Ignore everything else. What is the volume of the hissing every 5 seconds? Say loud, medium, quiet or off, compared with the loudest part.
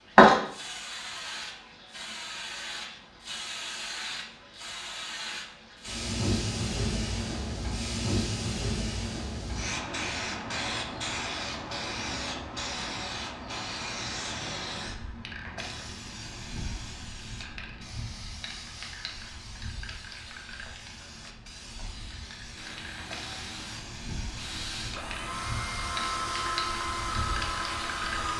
loud, medium, medium, quiet, quiet, medium.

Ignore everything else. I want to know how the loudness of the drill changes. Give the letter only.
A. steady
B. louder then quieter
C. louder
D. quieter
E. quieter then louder
C.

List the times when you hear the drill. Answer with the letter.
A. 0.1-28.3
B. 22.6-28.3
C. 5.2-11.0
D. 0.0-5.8
B.